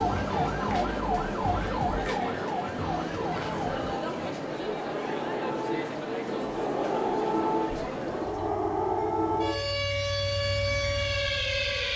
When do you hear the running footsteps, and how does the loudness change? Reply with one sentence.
You can't hear the running footsteps here.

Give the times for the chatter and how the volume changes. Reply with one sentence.
The chatter can be heard from 0.0 to 8.6 s, at a steady volume.